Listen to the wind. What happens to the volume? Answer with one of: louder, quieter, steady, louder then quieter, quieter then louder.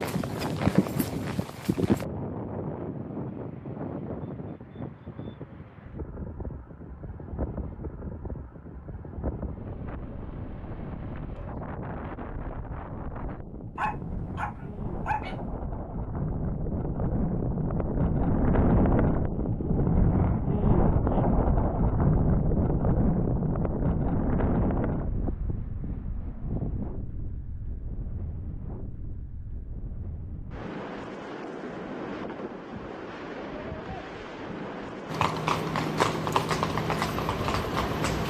louder then quieter.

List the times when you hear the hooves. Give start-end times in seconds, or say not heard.
0.0-2.0, 35.1-38.2.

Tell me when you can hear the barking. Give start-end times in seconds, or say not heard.
13.8-15.3.